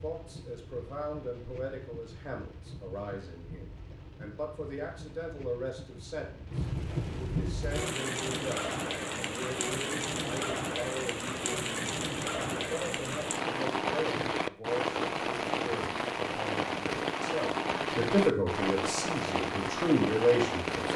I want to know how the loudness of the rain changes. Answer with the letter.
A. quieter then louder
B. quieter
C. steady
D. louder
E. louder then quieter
D.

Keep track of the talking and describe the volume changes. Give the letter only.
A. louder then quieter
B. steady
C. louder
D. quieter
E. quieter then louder
C.